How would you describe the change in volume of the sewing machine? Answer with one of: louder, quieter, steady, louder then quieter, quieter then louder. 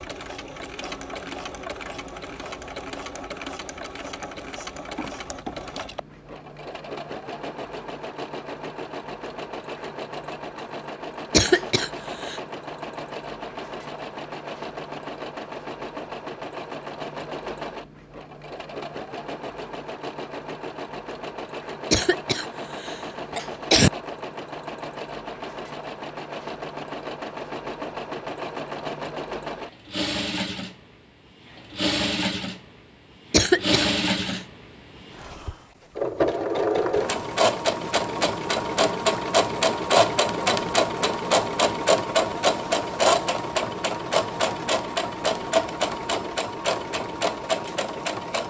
louder.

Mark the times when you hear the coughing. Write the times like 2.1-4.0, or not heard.
11.3-12.4, 21.9-23.9, 33.3-34.4.